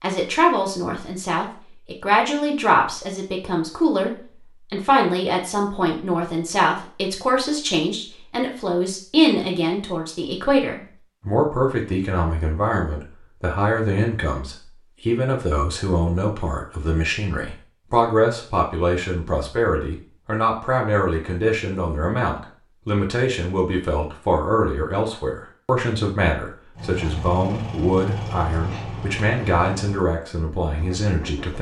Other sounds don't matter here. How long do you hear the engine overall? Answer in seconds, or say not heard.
5 s.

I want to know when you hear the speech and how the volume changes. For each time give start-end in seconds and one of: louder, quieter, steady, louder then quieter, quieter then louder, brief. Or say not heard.
0.0-31.5 steady.